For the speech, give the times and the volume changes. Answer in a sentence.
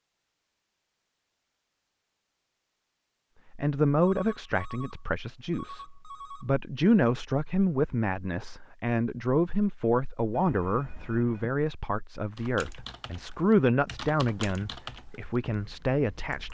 You can hear the speech from 3.5 to 16.4 s, at a steady volume.